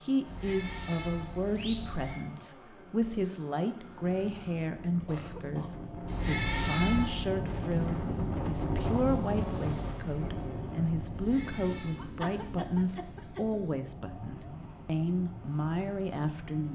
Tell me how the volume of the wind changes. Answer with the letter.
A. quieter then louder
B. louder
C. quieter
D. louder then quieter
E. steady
D.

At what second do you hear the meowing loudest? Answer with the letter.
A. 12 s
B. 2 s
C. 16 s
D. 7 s
D.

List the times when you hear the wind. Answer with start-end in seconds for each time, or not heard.
4.0-16.6.